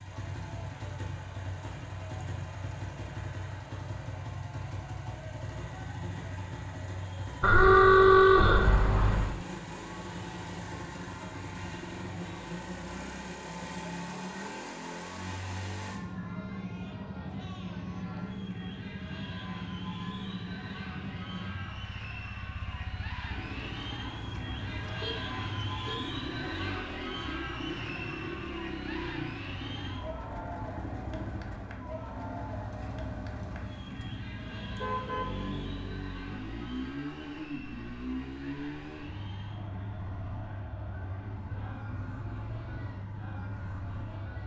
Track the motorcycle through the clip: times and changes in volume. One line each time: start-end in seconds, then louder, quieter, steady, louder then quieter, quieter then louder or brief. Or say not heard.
0.0-44.4 steady.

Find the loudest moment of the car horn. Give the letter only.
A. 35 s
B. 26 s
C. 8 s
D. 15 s
C.